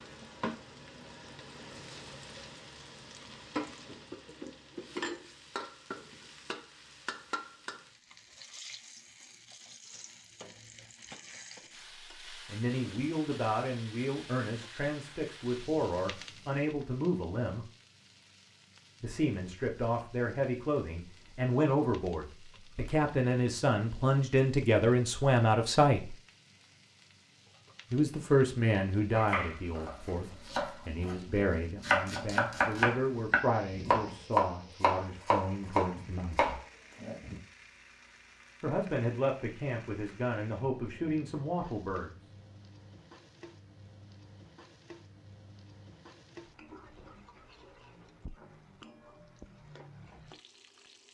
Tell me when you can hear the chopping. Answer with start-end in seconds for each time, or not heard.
29.1-37.4.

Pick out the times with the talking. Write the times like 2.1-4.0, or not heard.
12.3-17.6, 19.0-26.1, 27.9-36.6, 38.6-42.1.